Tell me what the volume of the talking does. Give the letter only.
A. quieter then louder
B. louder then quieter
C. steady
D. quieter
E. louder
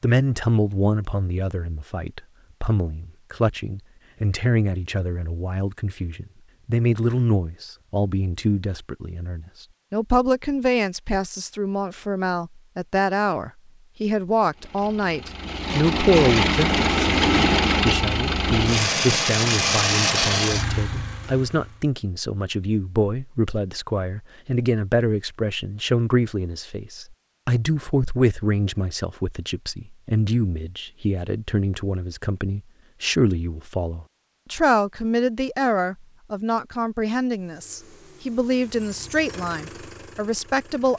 C.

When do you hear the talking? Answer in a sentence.
You can hear the talking from 0.0 to 40.9 s.